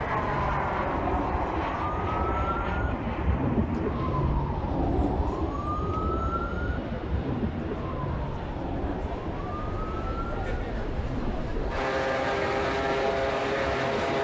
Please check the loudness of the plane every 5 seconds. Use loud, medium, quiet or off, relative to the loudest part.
loud, quiet, loud.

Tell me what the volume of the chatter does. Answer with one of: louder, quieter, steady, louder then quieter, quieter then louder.
louder.